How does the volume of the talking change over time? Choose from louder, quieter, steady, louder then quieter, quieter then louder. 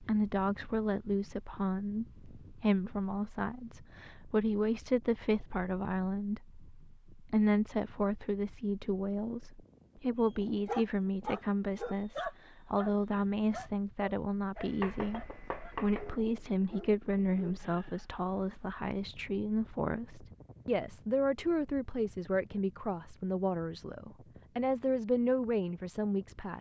steady.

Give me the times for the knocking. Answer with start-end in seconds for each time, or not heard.
14.6-16.2.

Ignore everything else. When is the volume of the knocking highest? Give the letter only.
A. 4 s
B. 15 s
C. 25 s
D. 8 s
B.